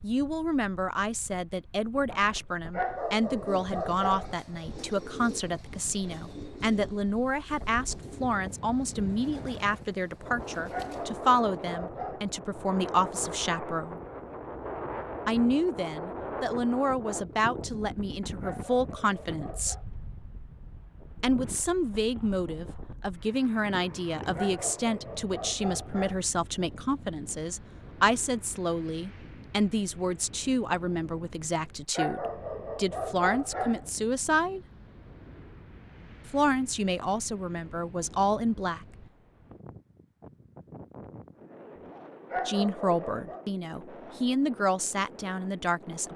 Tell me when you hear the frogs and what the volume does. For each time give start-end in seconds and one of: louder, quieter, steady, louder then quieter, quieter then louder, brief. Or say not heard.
not heard.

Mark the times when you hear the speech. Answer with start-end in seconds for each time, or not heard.
0.0-14.0, 15.2-19.9, 21.2-34.6, 36.2-38.9, 42.5-46.1.